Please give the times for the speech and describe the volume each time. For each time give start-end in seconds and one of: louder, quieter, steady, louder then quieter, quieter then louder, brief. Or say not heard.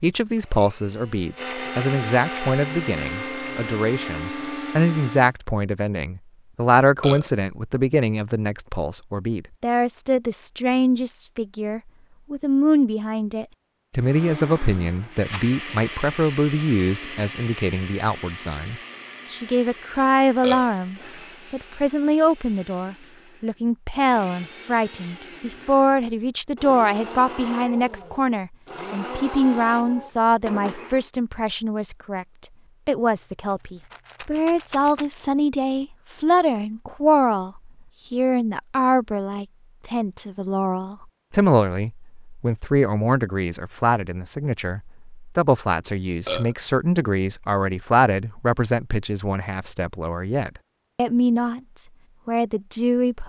0.0-53.2 steady.